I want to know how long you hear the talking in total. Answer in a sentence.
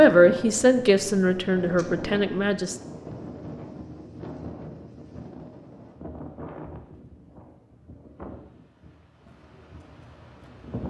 The talking can be heard for 3 seconds in total.